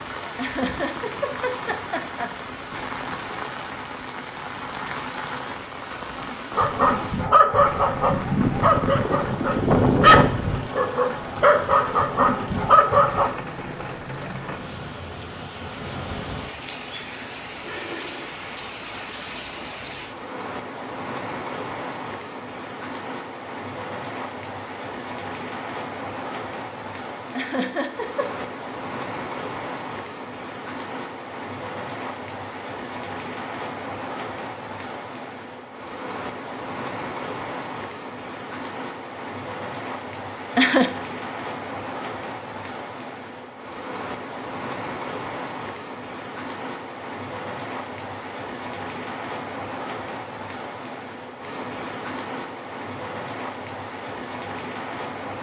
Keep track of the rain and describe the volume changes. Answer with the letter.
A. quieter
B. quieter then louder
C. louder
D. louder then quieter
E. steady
E.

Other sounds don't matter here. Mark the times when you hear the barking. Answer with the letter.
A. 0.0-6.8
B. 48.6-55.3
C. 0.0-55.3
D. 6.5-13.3
D.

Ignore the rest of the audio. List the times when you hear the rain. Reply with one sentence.
You can hear the rain from 0.0 to 55.3 s.